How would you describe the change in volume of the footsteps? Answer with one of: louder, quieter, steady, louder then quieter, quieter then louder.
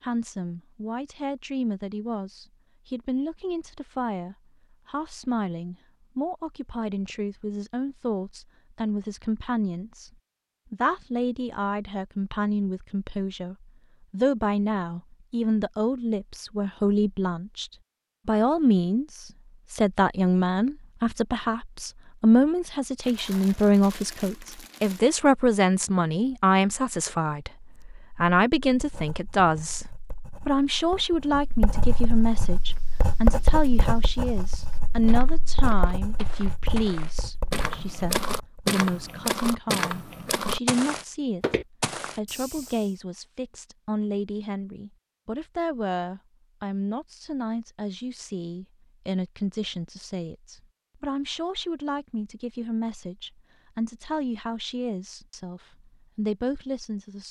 louder.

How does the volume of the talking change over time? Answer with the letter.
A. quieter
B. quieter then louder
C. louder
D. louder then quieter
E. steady
D.